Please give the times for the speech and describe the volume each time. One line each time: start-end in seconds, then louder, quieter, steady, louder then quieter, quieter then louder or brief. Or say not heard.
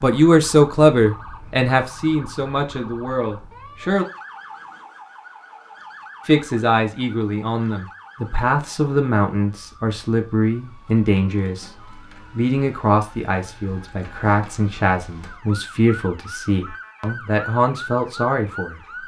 0.0-4.0 quieter
6.2-18.8 steady.